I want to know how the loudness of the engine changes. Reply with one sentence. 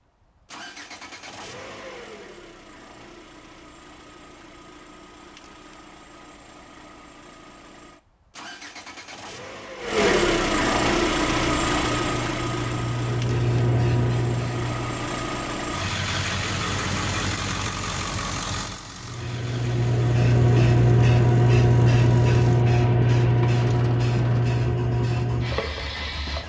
The loudness of the engine goes up, then down.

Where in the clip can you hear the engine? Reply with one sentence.
The engine can be heard from 0.0 to 26.4 s.